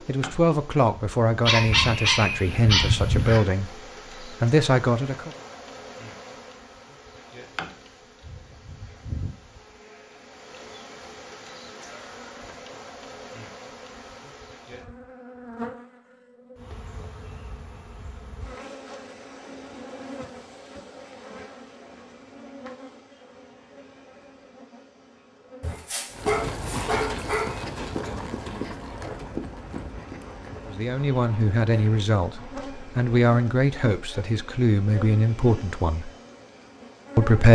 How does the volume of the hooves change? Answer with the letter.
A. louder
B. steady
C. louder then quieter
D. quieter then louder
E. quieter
E.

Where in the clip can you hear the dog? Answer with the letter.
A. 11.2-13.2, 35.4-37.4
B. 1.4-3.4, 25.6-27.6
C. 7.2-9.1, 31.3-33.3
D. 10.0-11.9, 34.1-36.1
B.